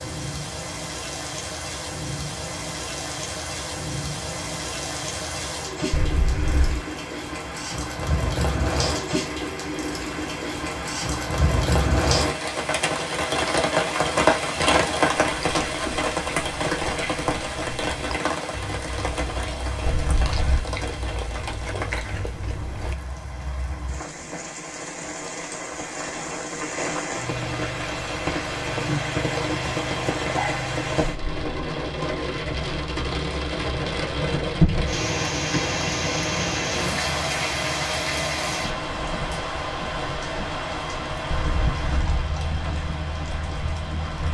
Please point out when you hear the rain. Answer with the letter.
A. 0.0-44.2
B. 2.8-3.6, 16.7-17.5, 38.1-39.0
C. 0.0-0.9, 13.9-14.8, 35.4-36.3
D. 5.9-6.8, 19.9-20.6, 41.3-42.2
A.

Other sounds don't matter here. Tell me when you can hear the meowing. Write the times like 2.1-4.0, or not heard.
5.9-6.8, 19.9-20.6, 41.3-42.2.